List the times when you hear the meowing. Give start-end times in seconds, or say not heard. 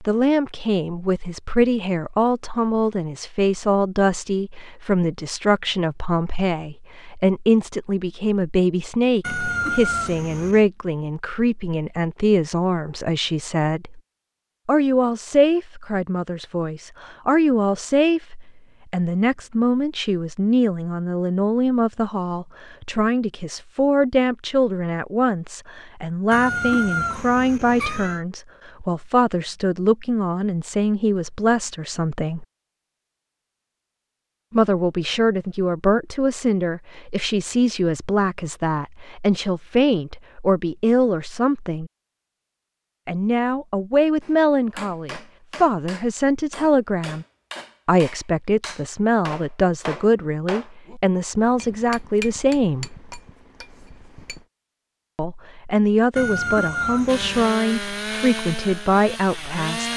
9.2-10.7, 26.3-28.2, 56.1-57.5.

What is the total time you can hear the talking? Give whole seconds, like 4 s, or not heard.
53 s.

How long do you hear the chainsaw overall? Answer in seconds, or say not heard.
3 s.